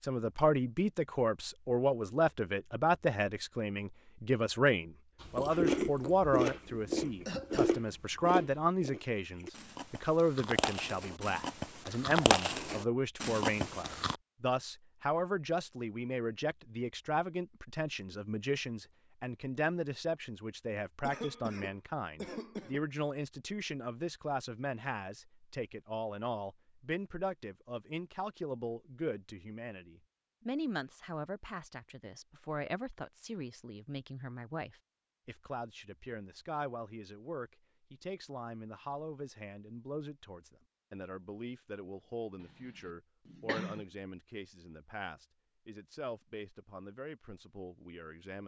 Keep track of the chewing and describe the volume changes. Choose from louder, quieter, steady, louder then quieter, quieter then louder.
quieter then louder.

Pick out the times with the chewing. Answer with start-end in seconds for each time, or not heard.
5.3-14.2.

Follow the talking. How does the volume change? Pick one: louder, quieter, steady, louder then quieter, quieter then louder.
quieter.